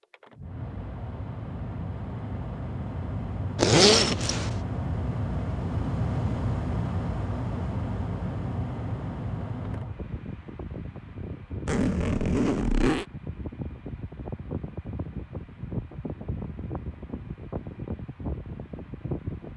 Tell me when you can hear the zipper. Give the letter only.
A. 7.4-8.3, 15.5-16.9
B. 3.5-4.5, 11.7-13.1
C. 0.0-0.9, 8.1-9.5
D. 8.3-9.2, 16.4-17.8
B.